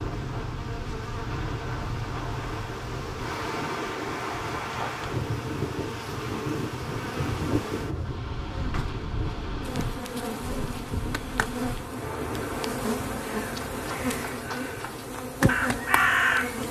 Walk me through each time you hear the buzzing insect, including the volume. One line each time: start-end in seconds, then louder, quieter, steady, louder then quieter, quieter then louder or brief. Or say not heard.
0.0-16.6 louder.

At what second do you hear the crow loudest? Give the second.
16 s.